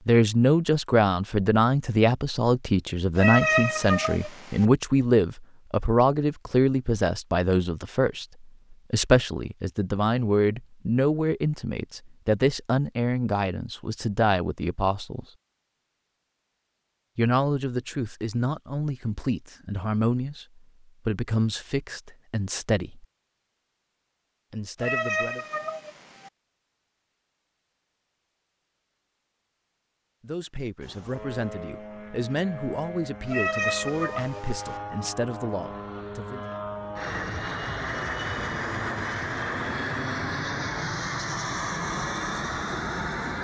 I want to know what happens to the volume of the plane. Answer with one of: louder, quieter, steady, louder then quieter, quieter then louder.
louder.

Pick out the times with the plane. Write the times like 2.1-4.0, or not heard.
30.8-43.3.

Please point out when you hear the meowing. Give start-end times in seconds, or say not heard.
3.1-4.7, 24.8-26.3, 33.2-34.8.